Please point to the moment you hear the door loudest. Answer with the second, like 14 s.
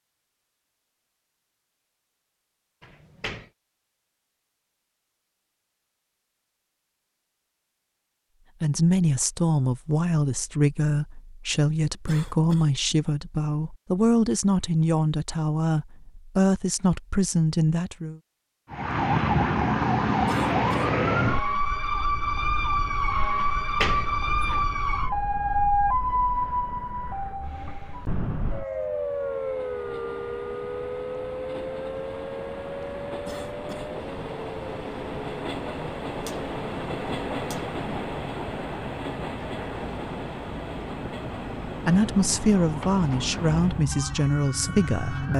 24 s.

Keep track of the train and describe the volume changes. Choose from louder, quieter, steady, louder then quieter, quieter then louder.
louder then quieter.